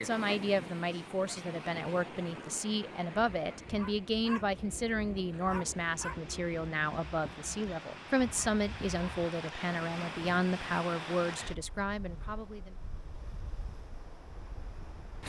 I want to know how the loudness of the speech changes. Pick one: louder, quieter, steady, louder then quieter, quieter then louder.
steady.